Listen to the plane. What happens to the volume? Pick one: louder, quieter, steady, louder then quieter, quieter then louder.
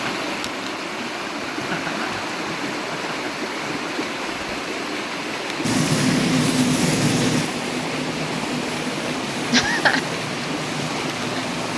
quieter.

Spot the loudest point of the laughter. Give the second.
10 s.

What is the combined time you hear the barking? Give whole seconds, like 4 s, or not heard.
not heard.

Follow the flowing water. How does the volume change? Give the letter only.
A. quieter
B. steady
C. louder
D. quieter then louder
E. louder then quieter
B.